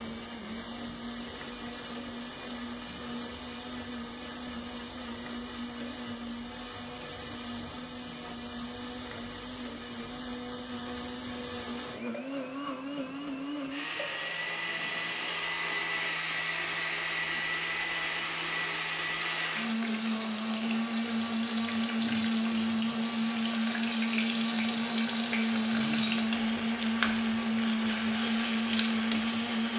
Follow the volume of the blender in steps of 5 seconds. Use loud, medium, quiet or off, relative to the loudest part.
medium, medium, medium, loud, loud, loud.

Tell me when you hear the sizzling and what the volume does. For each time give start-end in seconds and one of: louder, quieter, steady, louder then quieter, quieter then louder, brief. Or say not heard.
0.2-29.7 louder.